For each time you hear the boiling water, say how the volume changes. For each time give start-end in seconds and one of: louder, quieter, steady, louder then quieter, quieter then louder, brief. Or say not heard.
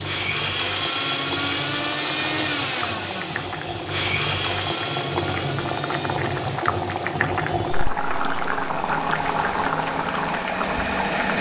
0.0-11.3 louder.